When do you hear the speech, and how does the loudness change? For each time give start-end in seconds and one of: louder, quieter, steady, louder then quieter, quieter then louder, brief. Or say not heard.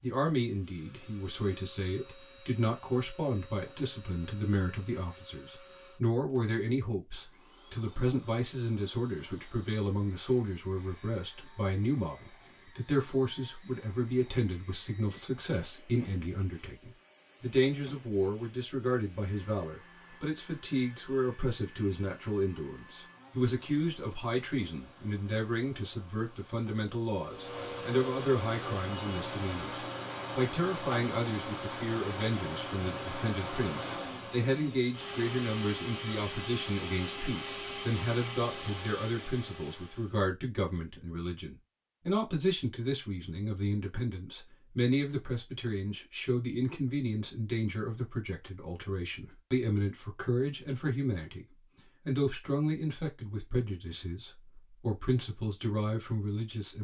0.0-51.5 steady
52.0-56.7 quieter then louder.